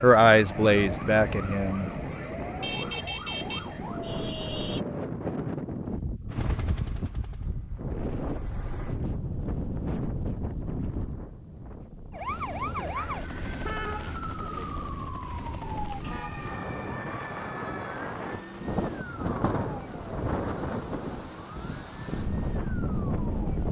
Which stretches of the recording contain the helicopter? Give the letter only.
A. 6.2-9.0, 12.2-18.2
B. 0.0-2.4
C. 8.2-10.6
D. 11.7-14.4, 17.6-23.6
A.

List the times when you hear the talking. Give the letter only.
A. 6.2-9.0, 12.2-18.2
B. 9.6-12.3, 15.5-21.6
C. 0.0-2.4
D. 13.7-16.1
C.